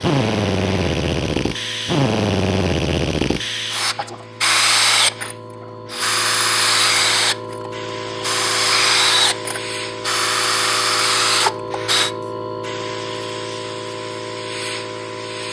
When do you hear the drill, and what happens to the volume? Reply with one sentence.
You can hear the drill from 0.0 to 12.1 s, at a steady volume.